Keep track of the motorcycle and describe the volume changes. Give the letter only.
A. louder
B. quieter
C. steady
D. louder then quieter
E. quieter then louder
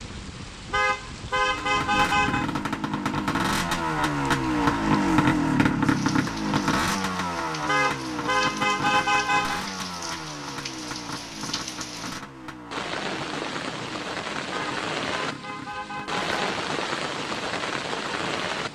B.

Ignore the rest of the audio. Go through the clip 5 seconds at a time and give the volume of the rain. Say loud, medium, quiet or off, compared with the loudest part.
medium, medium, loud, loud.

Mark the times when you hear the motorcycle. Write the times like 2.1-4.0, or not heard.
1.2-18.6.